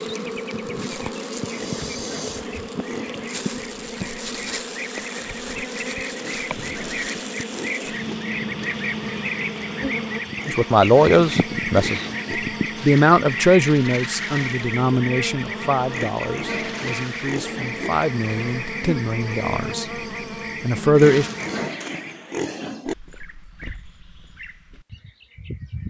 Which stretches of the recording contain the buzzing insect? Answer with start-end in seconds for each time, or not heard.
0.0-21.7.